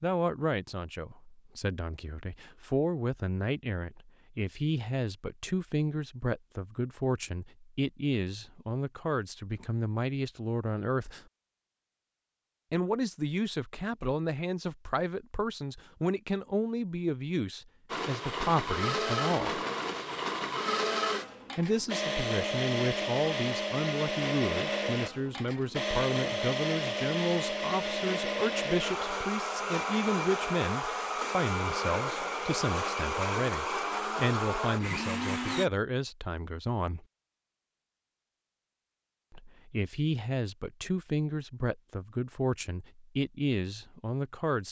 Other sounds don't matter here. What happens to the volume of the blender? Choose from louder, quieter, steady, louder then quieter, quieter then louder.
steady.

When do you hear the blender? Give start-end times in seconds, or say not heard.
17.9-35.6.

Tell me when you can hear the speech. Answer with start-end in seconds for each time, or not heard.
0.0-11.2, 12.7-19.6, 21.6-37.0, 39.3-44.6.